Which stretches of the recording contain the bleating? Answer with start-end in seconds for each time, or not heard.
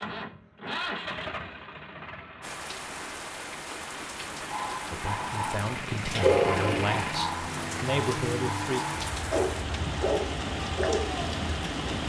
not heard.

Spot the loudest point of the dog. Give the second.
6 s.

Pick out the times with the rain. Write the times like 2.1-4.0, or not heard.
2.4-12.0.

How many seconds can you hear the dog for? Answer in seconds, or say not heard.
7 s.